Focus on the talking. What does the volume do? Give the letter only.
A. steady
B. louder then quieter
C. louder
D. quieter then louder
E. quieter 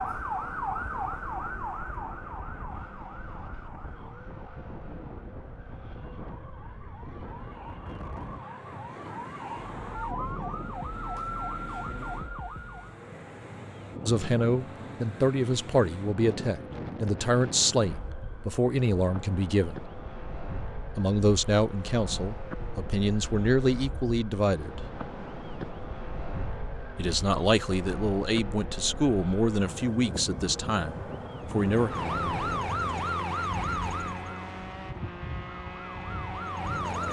A.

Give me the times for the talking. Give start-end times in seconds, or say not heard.
14.1-19.8, 20.9-24.9, 26.9-31.9.